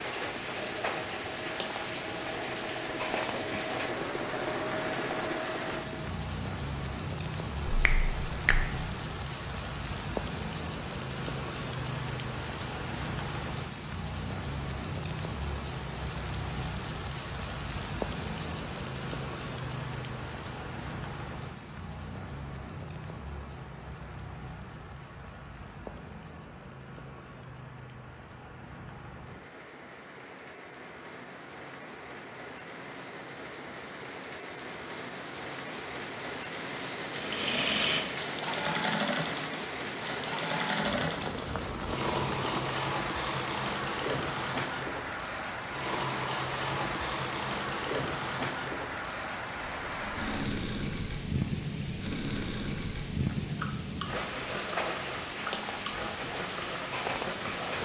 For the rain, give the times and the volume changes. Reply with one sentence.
You can hear the rain from 0.0 to 57.7 s, getting quieter then louder.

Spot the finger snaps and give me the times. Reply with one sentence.
The finger snaps can be heard from 7.7 to 8.7 s.